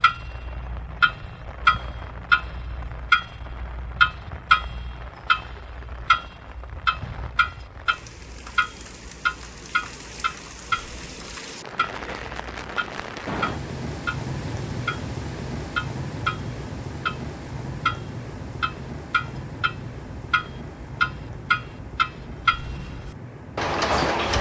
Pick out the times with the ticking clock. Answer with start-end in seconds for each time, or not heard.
0.0-24.3.